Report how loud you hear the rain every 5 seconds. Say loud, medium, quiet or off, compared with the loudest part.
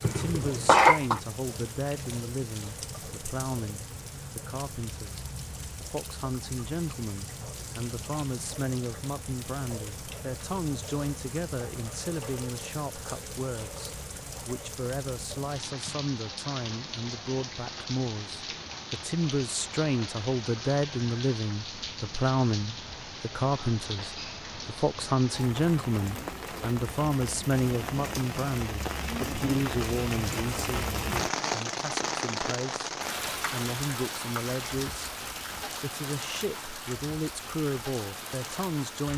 medium, medium, medium, medium, medium, loud, loud, medium.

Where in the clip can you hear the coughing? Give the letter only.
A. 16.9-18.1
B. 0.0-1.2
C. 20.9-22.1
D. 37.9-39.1
B.